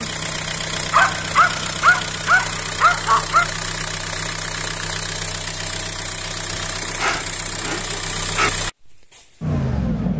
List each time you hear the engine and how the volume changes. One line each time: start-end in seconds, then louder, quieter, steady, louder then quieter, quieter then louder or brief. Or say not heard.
0.0-10.1 steady.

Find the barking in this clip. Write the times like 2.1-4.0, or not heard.
0.9-3.5, 6.5-8.5.